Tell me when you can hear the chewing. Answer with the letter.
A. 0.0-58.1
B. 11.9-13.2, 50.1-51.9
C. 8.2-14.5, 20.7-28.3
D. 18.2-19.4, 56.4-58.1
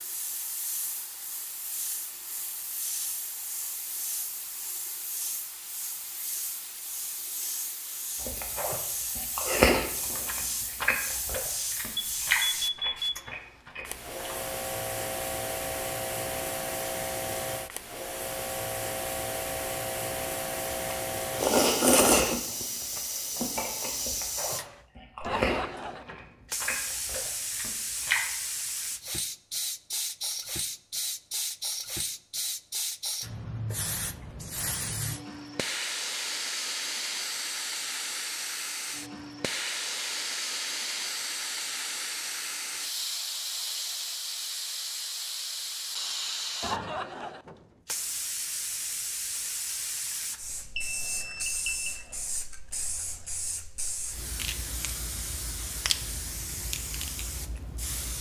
C.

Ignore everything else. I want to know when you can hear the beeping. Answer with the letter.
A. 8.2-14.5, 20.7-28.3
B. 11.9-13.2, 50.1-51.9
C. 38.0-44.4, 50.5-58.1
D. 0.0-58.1
B.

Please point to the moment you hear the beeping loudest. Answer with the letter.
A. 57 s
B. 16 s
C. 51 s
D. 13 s
D.